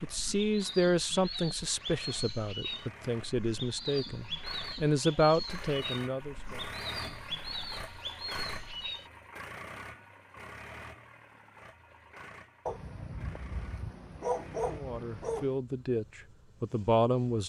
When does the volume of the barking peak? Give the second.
14 s.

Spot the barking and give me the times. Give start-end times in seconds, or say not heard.
12.7-15.6.